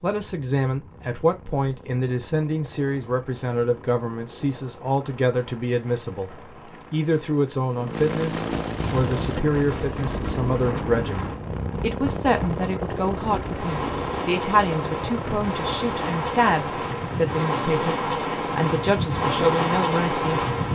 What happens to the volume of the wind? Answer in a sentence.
The loudness of the wind goes up.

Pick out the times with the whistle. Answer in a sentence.
The whistle can't be heard in this clip.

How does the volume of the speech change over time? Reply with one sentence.
The loudness of the speech stays about the same.